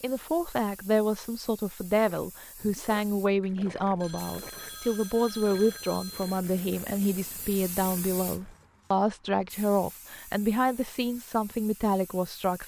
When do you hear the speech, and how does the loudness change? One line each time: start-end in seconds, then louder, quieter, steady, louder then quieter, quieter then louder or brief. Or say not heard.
0.0-12.6 steady.